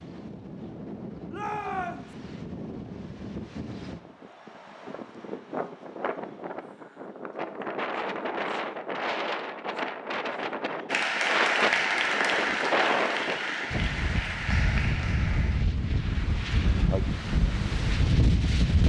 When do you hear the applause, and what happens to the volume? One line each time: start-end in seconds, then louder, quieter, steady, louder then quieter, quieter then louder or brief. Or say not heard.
10.8-15.7 quieter.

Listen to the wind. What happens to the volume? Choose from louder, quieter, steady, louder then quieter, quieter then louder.
louder.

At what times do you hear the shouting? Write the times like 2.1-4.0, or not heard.
1.3-2.1.